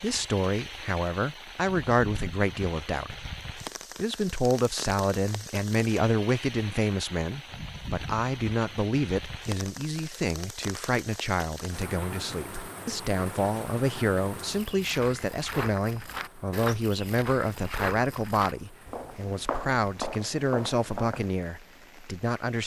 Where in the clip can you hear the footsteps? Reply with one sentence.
The footsteps can be heard from 14.4 to 21.3 s.